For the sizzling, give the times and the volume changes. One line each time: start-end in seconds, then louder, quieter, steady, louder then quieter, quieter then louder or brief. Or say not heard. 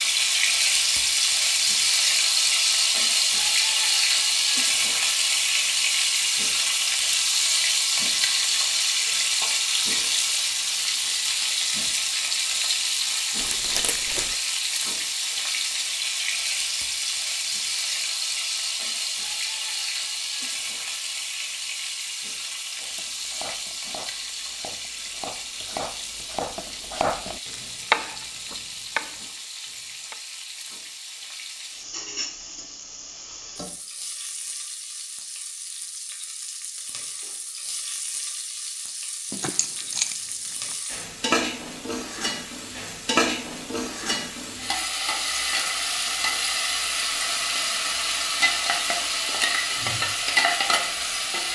0.0-51.5 quieter then louder.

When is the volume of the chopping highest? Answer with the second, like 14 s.
28 s.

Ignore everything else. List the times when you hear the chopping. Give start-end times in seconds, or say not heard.
22.8-30.2.